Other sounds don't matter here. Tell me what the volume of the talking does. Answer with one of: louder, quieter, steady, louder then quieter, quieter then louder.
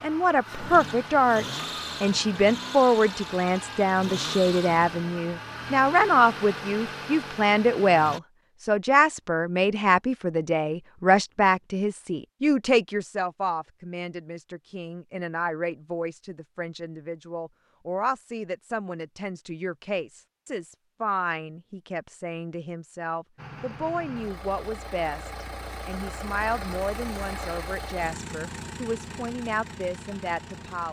quieter.